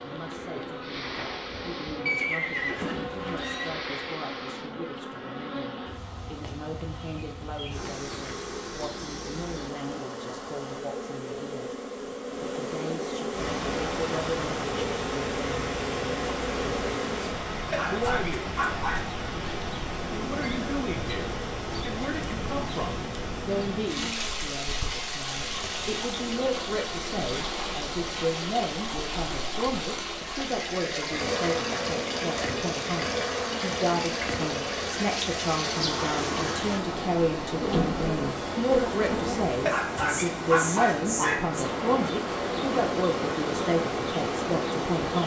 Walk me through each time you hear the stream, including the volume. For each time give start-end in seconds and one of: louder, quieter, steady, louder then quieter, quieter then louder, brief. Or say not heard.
13.3-45.2 steady.